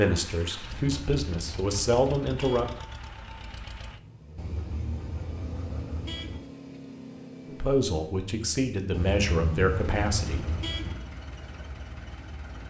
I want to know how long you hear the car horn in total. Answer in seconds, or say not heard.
6 s.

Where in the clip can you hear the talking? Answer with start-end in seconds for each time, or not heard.
0.0-2.7, 7.5-10.4.